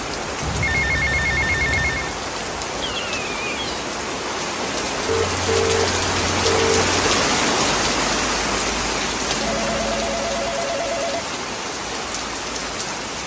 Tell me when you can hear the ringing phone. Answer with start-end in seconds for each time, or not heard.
0.4-2.1, 5.0-6.9, 9.3-11.3.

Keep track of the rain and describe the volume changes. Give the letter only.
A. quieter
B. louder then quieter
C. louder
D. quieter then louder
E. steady
B.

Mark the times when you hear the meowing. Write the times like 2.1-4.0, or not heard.
2.8-3.9.